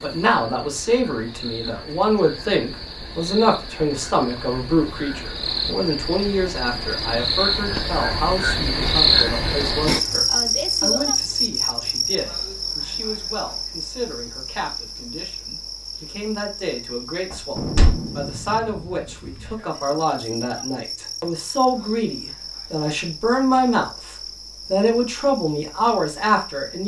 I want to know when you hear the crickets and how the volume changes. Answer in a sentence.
The crickets can be heard from 0.0 to 26.8 s, getting louder then quieter.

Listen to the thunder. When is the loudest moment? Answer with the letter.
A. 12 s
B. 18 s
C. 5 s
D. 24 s
B.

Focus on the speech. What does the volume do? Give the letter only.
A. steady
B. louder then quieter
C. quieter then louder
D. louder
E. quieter
C.